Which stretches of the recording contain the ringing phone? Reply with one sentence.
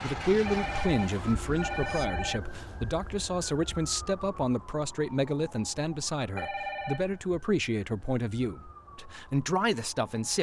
You can hear the ringing phone from 0.5 to 2.4 s and from 6.3 to 7.2 s.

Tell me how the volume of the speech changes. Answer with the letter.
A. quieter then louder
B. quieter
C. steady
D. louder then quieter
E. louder
C.